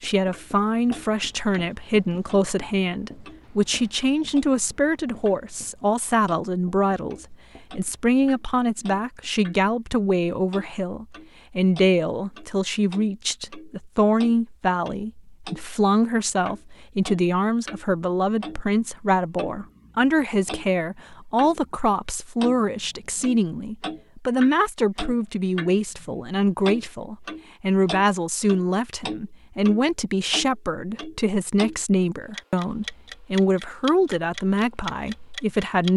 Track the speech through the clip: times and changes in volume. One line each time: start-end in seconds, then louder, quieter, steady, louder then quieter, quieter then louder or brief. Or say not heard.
0.0-35.9 steady.